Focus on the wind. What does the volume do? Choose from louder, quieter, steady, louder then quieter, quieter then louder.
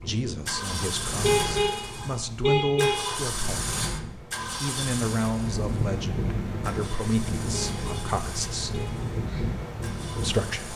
louder.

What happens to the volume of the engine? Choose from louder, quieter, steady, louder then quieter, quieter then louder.
quieter.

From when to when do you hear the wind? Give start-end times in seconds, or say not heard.
0.0-10.7.